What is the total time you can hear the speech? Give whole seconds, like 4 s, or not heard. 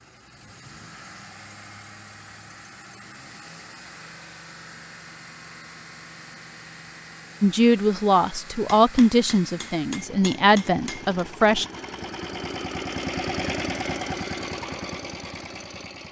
4 s.